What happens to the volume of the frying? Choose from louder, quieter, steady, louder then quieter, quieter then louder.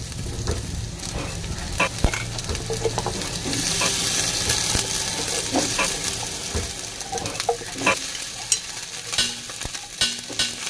louder then quieter.